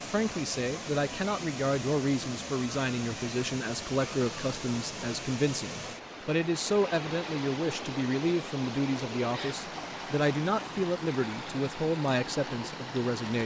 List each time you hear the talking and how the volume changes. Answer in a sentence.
The talking can be heard from 0.0 to 13.4 s, at a steady volume.